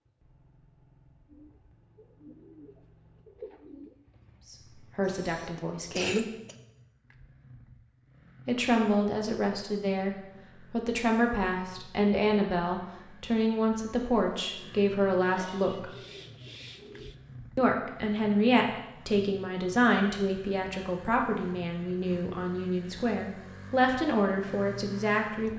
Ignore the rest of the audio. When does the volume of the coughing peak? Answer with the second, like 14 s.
6 s.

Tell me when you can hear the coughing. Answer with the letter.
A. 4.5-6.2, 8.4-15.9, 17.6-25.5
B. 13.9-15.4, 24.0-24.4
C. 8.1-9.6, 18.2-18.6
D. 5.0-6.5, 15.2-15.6
D.